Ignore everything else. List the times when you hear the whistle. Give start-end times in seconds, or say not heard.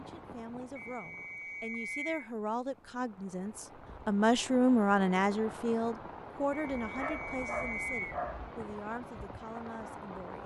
0.8-2.2, 6.5-8.2.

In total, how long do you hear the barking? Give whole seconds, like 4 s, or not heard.
2 s.